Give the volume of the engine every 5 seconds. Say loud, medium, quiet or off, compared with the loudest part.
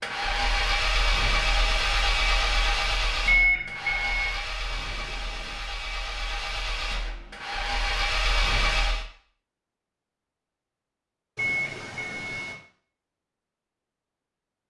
loud, loud, off.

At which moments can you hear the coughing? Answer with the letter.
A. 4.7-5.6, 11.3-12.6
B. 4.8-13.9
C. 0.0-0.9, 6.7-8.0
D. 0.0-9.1
A.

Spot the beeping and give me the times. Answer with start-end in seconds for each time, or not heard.
3.2-4.4, 11.3-12.6.